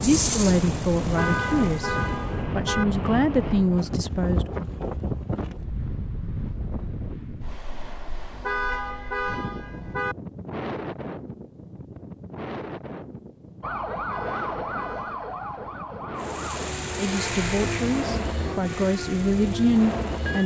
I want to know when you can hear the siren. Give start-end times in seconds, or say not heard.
13.6-20.4.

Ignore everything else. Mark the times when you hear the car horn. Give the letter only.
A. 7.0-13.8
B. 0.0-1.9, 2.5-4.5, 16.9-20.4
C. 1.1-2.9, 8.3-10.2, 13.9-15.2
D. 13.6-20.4
C.